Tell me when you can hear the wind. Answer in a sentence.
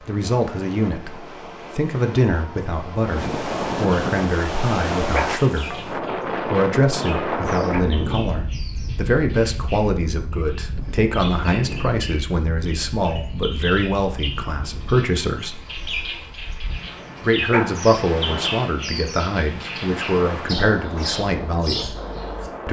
The wind can be heard from 0.0 to 22.6 s.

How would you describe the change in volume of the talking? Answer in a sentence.
The volume of the talking stays about the same.